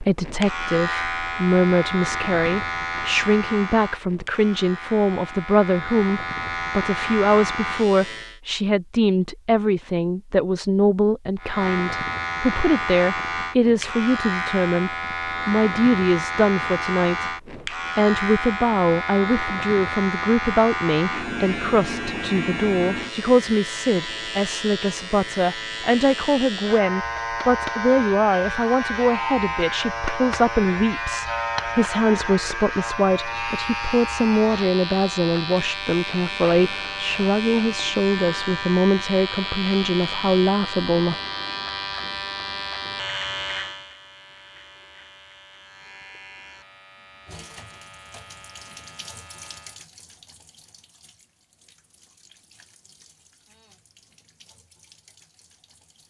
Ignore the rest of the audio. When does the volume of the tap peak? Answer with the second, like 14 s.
49 s.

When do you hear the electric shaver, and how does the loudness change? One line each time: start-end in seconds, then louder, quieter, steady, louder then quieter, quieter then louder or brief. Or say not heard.
0.0-8.4 quieter then louder
11.4-49.9 quieter.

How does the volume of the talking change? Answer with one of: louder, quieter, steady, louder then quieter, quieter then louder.
steady.